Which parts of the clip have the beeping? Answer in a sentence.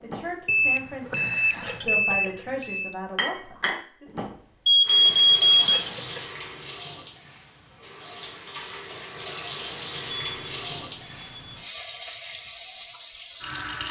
The beeping can be heard from 0.5 to 3.0 s, from 4.7 to 5.6 s and from 10.1 to 11.6 s.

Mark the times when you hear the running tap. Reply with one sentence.
The running tap can be heard from 4.8 to 13.8 s.